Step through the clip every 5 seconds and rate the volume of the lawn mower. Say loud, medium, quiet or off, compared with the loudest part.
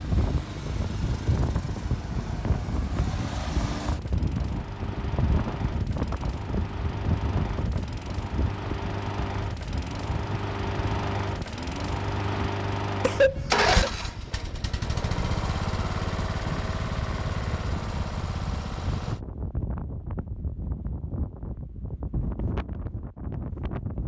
medium, medium, loud, loud, off.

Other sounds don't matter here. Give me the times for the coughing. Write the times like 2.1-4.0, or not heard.
13.0-13.9.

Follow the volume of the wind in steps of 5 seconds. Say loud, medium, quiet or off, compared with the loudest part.
loud, loud, medium, medium, loud.